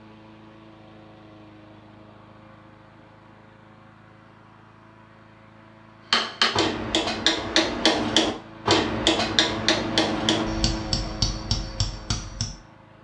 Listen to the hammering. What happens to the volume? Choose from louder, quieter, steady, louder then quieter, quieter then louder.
quieter.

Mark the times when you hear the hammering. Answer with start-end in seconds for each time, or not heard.
6.1-12.6.